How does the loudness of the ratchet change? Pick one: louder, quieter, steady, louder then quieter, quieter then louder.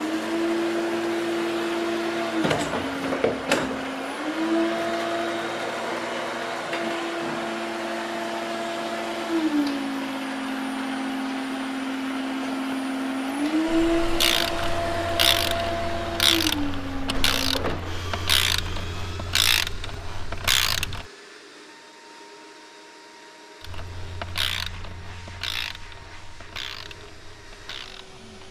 quieter.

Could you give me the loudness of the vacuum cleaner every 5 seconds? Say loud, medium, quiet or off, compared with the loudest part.
loud, loud, loud, medium, quiet, quiet.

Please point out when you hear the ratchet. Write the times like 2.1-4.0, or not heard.
13.7-21.1, 23.6-28.4.